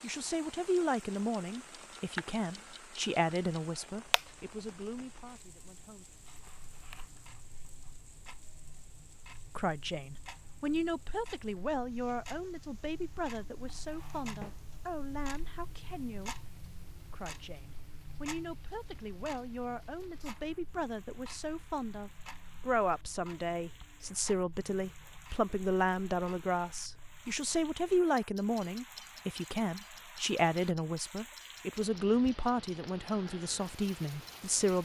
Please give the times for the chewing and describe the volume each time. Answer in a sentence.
The chewing can't be heard in this clip.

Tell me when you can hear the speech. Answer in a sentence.
You can hear the speech from 0.0 to 6.0 s and from 9.3 to 34.7 s.